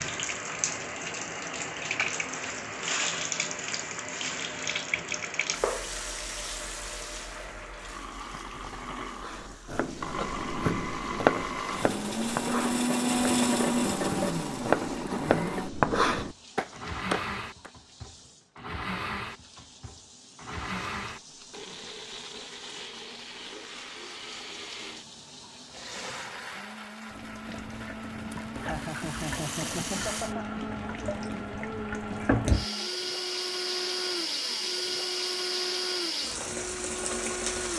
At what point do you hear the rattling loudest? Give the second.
30 s.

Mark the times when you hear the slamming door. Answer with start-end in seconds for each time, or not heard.
not heard.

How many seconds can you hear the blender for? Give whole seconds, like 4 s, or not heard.
38 s.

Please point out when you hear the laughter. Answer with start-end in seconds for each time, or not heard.
28.4-30.4.